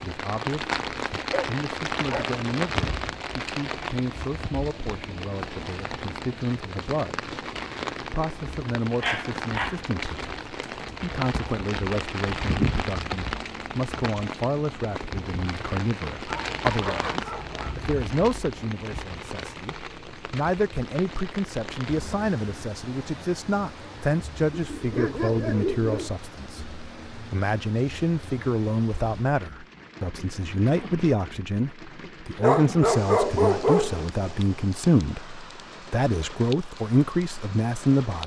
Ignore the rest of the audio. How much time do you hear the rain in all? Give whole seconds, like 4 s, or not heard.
38 s.